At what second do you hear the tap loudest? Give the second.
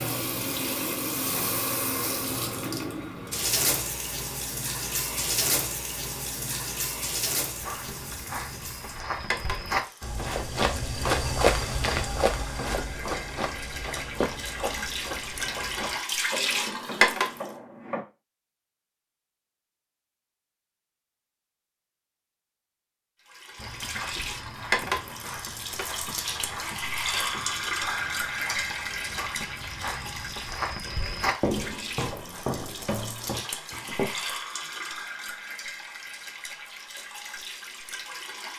17 s.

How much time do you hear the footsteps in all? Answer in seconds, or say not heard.
21 s.